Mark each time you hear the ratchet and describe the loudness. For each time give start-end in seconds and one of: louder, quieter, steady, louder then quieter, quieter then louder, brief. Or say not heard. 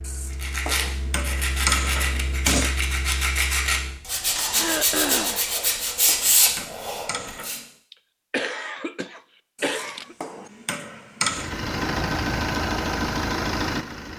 not heard.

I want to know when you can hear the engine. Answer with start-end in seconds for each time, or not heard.
0.0-5.5, 11.2-14.1.